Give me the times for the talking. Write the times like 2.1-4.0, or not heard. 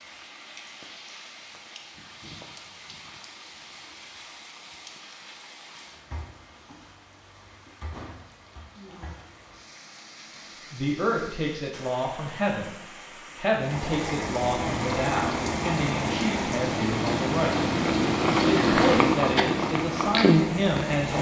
10.7-17.7, 18.4-21.1.